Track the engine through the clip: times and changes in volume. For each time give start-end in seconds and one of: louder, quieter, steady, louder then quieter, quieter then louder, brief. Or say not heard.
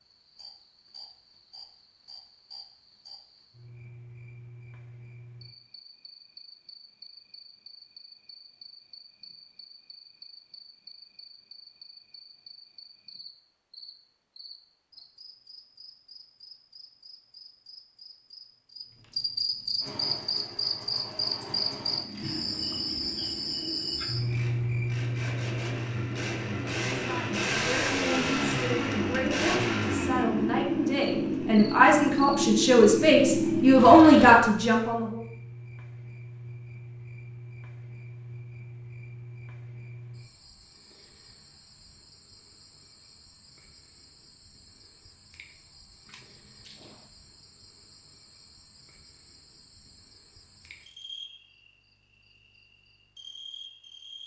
19.8-34.4 louder.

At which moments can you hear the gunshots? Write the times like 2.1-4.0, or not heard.
46.0-47.1.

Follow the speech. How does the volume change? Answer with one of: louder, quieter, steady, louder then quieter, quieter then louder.
louder.